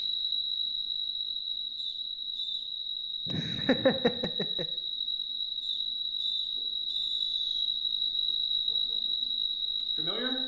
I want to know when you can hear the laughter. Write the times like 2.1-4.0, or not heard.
3.2-4.7.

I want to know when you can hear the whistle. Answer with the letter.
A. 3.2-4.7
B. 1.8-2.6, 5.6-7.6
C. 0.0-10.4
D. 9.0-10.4
B.